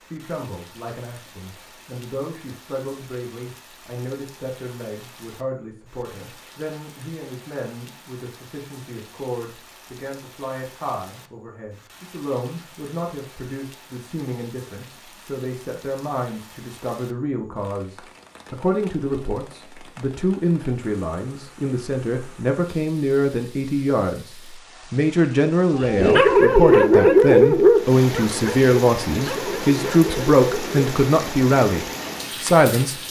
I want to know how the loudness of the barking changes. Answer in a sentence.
The volume of the barking goes down.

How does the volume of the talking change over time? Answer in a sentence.
The loudness of the talking goes up.